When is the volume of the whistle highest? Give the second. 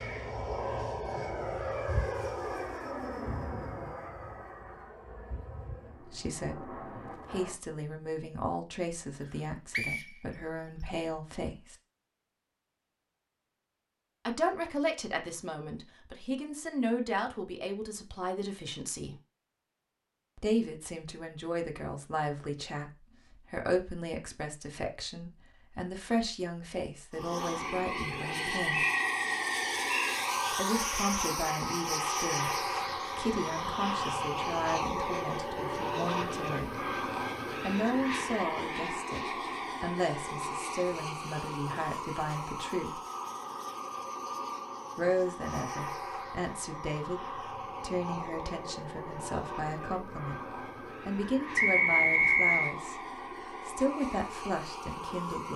52 s.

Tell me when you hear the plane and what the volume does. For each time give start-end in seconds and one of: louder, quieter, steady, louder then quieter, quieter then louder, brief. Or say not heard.
0.0-7.6 quieter
27.1-55.5 quieter.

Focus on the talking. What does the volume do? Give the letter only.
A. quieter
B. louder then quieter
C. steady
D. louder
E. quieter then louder
C.